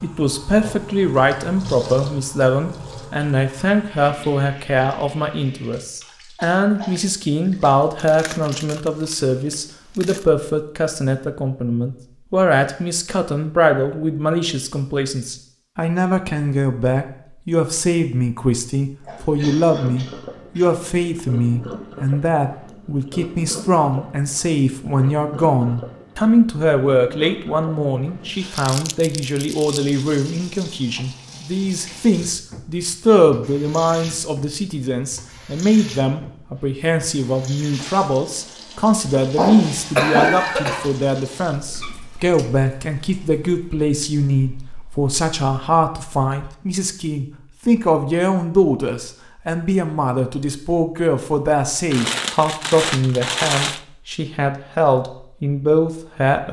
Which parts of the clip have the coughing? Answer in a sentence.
The coughing can be heard from 6.3 to 7.0 s, from 19.1 to 20.8 s and from 39.1 to 40.9 s.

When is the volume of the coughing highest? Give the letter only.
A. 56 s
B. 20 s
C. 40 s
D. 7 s
C.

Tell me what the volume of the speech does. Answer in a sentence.
The volume of the speech stays about the same.